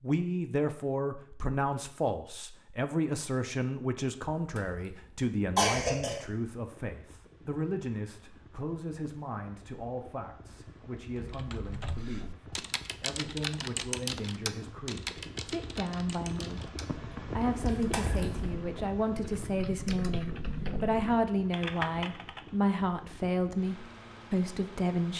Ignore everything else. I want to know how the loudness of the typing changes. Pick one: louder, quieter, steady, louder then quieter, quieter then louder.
quieter then louder.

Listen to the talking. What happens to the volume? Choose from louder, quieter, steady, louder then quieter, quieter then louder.
quieter then louder.